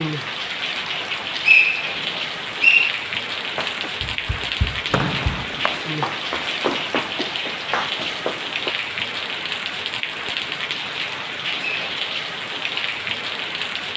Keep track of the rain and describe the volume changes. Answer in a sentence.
The loudness of the rain stays about the same.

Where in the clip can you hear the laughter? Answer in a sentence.
You can't hear the laughter here.